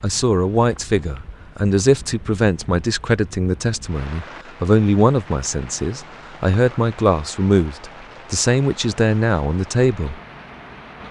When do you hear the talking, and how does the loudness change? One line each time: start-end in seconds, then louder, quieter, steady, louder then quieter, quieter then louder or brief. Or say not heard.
0.0-10.2 steady.